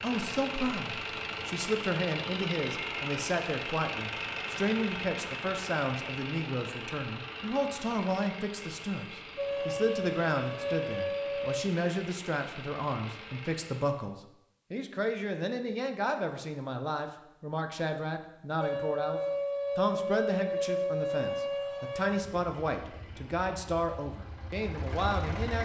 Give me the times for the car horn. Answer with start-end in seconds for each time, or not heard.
not heard.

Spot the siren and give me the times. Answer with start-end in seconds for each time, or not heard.
9.3-11.6, 18.6-22.2.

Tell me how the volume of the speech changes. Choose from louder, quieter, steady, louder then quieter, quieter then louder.
steady.